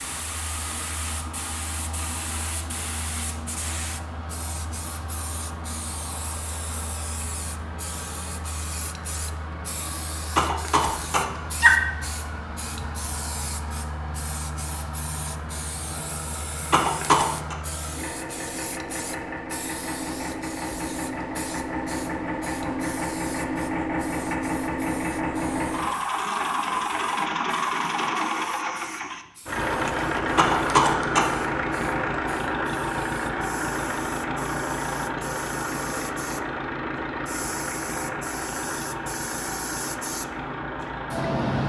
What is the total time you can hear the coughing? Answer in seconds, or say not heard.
3 s.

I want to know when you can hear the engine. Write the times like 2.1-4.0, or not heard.
0.0-41.6.